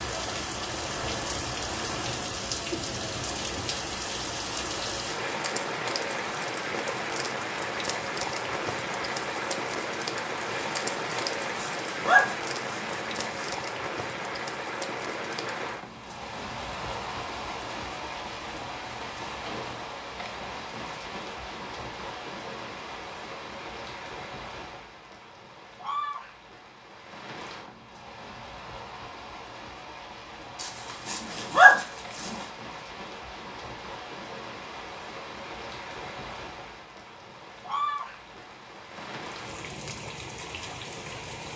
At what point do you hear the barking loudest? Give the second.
32 s.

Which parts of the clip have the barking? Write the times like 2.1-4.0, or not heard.
11.1-13.5, 30.6-32.5.